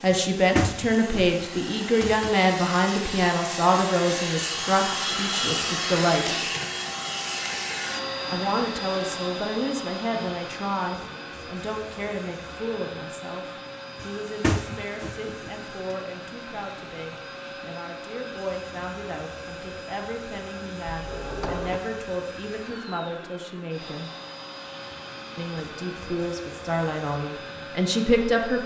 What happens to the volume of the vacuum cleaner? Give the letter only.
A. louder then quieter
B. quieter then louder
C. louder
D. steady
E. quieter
E.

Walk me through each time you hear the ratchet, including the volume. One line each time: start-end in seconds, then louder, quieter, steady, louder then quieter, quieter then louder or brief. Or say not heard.
not heard.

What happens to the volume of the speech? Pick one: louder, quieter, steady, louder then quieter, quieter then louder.
quieter then louder.